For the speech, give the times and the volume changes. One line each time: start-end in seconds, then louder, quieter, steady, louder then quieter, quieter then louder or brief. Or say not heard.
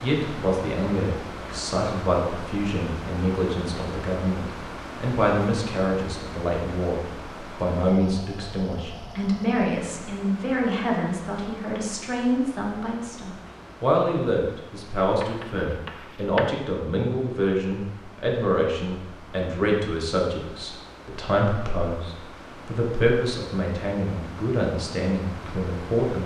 0.0-26.2 steady.